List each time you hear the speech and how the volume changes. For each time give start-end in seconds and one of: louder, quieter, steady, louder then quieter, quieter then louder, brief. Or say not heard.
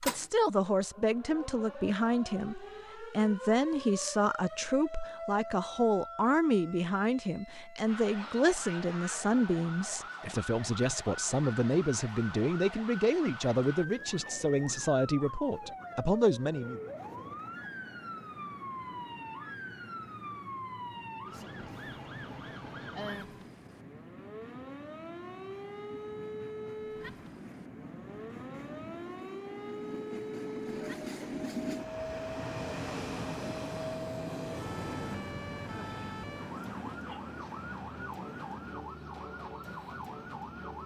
0.0-16.8 steady.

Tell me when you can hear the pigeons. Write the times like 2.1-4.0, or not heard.
not heard.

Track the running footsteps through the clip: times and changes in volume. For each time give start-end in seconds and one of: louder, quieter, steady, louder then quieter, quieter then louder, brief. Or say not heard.
not heard.